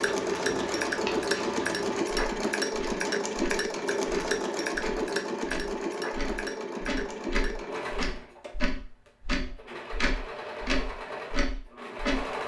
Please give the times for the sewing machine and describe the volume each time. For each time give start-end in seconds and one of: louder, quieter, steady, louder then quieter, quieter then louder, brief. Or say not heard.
0.0-12.4 quieter.